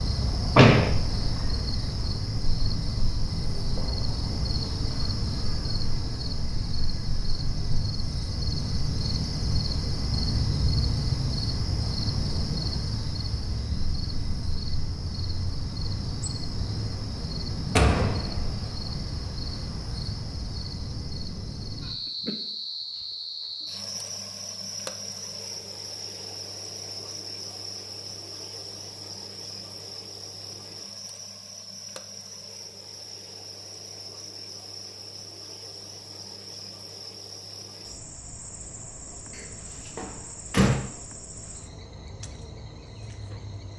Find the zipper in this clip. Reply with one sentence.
You can't hear the zipper here.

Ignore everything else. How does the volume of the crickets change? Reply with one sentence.
The volume of the crickets goes down.